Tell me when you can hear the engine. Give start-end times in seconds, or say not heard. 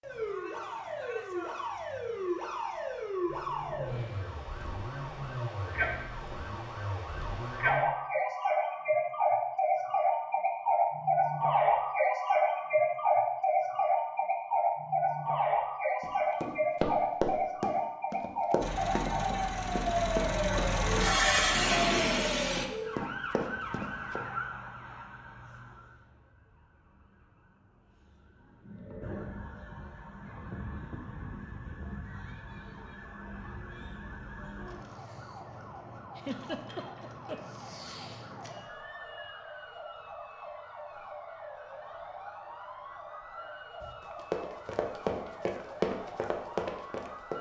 3.2-7.8, 18.6-22.6.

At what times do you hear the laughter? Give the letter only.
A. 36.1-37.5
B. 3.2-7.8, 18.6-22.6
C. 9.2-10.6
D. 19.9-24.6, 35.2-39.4
A.